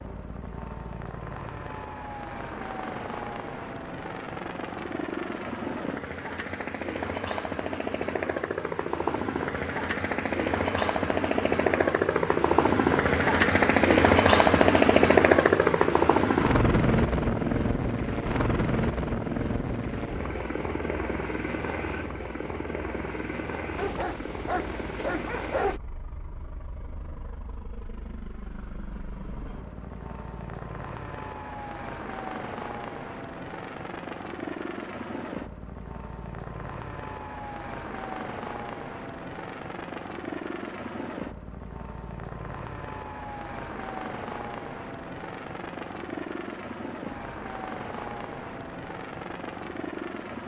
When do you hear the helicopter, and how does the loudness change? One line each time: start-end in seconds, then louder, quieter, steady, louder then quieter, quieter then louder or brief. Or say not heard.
0.0-50.4 louder then quieter.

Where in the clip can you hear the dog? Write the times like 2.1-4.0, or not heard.
23.8-25.8.